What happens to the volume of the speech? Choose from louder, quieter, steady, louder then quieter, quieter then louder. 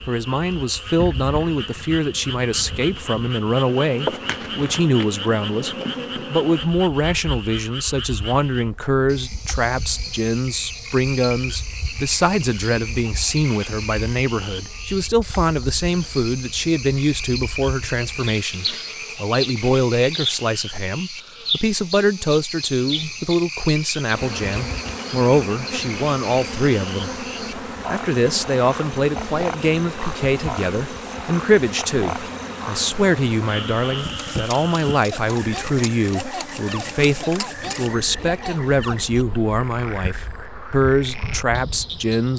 steady.